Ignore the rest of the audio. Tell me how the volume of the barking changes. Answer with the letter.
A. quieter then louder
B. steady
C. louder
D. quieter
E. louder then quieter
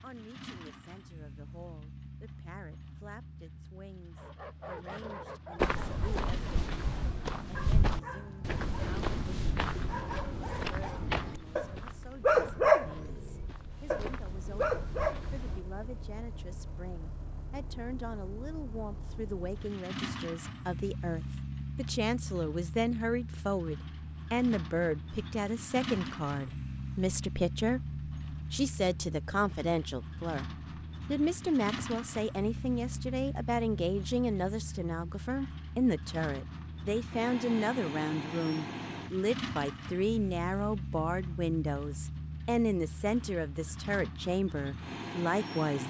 E.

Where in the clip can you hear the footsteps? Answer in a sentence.
You can hear the footsteps from 5.5 to 15.7 s.